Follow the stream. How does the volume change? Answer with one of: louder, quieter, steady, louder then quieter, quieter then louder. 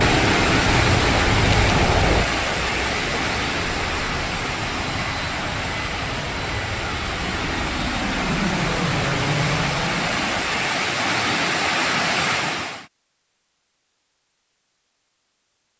quieter then louder.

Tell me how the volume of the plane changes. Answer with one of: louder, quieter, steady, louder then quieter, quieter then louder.
quieter then louder.